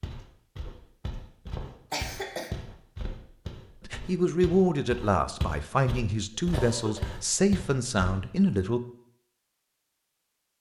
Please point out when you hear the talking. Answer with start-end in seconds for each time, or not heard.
3.8-8.8.